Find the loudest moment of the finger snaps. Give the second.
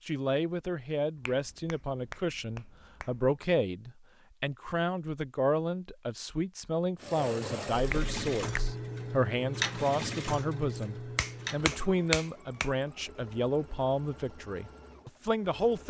12 s.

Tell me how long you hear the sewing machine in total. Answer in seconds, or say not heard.
9 s.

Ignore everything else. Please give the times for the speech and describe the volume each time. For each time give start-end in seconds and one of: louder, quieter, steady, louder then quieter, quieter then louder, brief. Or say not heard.
0.1-15.8 steady.